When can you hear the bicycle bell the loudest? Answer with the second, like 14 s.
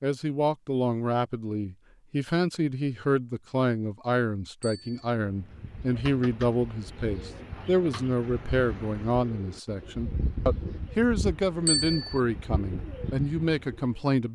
12 s.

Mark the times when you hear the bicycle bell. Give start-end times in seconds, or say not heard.
4.6-5.0, 11.7-12.2.